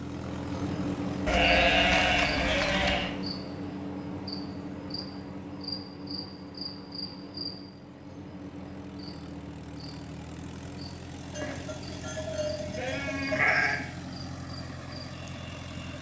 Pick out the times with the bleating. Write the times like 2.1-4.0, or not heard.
1.2-3.1, 11.3-13.8.